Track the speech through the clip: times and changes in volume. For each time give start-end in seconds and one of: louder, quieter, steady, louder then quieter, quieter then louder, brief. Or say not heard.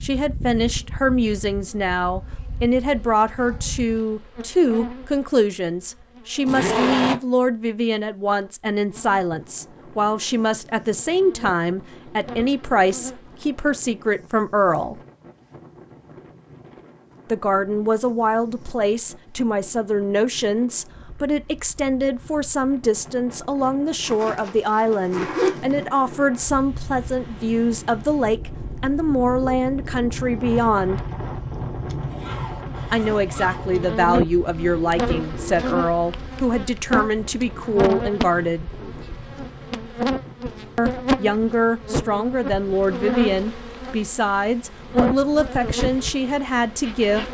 0.0-15.0 steady
17.2-31.0 steady
32.9-38.7 steady
40.8-47.2 steady.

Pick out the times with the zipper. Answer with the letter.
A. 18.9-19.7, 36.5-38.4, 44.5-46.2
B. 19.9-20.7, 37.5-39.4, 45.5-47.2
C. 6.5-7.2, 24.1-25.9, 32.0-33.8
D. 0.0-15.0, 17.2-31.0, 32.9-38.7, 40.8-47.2
C.